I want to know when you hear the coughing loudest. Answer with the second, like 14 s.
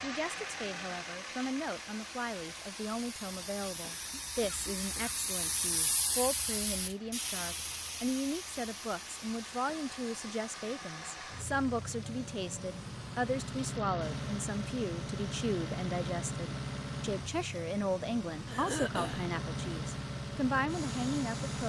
19 s.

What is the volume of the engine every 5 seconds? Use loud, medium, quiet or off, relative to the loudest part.
medium, quiet, loud, loud, loud.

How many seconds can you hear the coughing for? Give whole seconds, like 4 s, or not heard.
2 s.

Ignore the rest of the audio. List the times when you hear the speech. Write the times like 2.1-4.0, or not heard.
0.0-21.6.